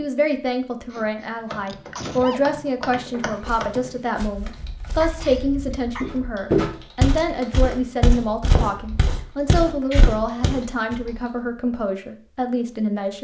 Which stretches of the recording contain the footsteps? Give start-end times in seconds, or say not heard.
3.4-11.0.